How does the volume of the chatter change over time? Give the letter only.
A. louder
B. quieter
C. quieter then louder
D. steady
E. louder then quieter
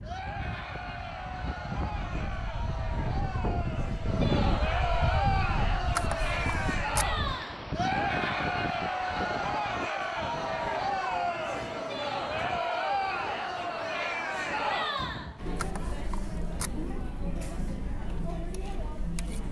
E.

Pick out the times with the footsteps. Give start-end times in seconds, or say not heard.
not heard.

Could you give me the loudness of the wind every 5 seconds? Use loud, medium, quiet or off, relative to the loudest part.
loud, loud, medium, medium.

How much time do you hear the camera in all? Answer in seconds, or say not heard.
2 s.